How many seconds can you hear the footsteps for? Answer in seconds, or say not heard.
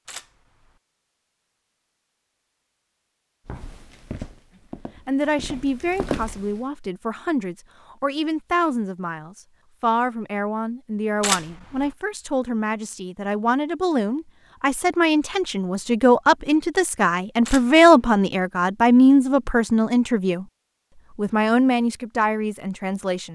3 s.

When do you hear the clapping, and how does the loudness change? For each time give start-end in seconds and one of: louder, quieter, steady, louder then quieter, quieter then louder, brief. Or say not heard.
not heard.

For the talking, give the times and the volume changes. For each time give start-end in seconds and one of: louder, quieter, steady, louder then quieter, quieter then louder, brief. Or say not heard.
5.0-20.4 louder
21.1-23.2 brief.